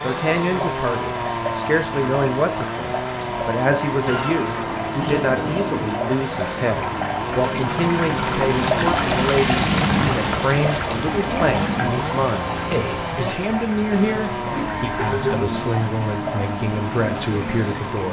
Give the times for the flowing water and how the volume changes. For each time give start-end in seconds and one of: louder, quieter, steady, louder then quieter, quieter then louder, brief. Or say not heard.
0.0-18.0 louder then quieter.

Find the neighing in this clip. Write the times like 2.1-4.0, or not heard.
4.0-6.0, 14.5-15.5.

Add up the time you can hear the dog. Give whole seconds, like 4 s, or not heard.
not heard.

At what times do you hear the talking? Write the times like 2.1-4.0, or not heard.
0.0-18.0.